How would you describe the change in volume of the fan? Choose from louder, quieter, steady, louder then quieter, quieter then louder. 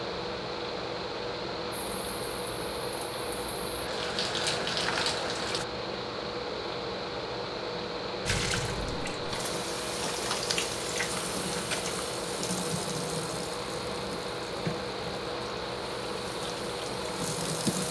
steady.